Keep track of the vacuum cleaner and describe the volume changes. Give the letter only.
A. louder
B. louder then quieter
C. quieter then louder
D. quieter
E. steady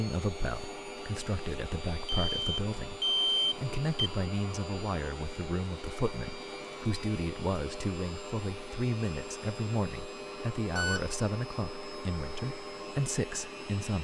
E.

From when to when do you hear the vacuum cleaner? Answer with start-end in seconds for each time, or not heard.
0.0-14.0.